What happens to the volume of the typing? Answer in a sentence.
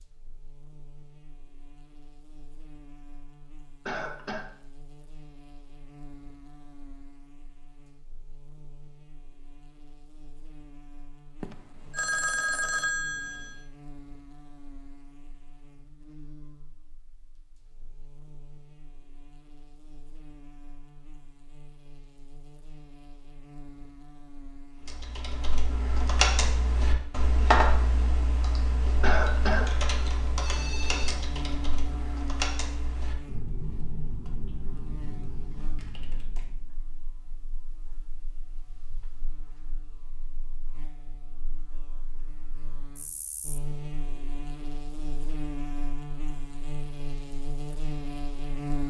The volume of the typing goes down.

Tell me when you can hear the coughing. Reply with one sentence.
You can hear the coughing from 3.9 to 4.5 s and from 29.0 to 29.7 s.